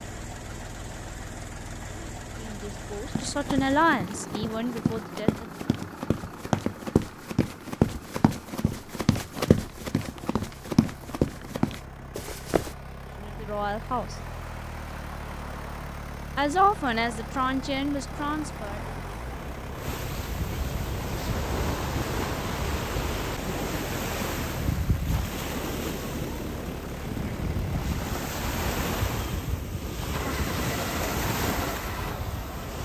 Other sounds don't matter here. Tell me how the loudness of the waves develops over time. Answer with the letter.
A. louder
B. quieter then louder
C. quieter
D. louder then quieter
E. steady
A.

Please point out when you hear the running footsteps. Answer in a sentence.
The running footsteps can be heard from 3.1 to 12.8 s.